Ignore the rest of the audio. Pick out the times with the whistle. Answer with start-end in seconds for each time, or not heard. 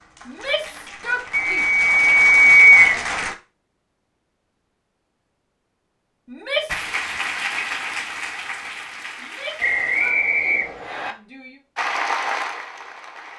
1.3-3.0, 9.6-11.2.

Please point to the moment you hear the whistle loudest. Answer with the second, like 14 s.
3 s.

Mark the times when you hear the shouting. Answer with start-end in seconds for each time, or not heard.
0.2-1.6, 6.2-6.9, 9.2-11.6.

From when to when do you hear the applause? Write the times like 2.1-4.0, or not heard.
0.0-3.4, 6.7-10.2, 11.8-13.3.